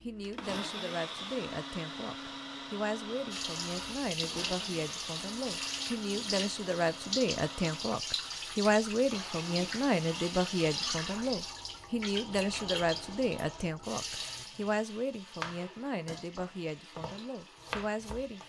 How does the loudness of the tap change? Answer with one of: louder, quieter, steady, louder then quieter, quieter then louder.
quieter.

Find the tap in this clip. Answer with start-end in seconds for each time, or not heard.
3.3-18.4.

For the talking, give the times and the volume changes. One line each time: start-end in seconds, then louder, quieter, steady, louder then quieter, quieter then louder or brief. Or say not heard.
0.0-18.4 louder then quieter.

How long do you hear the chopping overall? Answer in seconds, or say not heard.
3 s.